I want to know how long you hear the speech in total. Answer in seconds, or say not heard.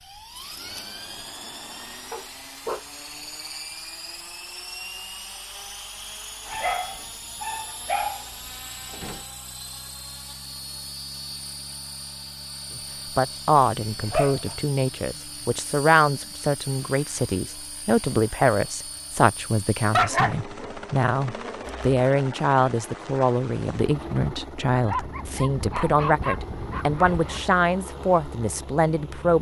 16 s.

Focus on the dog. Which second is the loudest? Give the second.
20 s.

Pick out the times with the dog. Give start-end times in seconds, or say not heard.
2.1-2.9, 6.5-9.2, 14.1-14.6, 19.9-21.8, 24.8-27.5.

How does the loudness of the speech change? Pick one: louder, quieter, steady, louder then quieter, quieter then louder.
steady.